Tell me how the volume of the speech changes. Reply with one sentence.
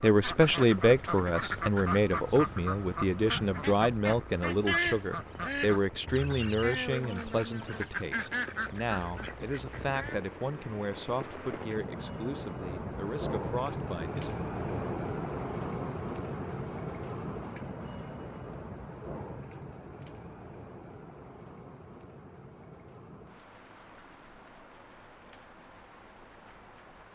The loudness of the speech goes down.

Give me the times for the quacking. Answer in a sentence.
The quacking can be heard from 0.0 to 10.3 s.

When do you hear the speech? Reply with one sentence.
The speech can be heard from 0.0 to 14.4 s.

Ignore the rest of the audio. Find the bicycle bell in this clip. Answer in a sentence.
The bicycle bell can't be heard in this clip.